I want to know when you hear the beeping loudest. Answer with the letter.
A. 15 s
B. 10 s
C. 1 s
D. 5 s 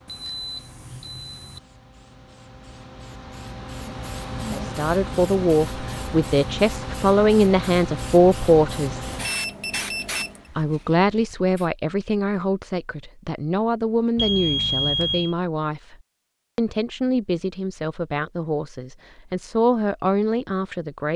A.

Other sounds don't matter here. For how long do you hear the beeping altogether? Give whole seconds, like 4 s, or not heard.
4 s.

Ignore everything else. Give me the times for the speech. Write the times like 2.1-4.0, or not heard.
4.5-9.1, 10.6-15.9, 16.6-21.1.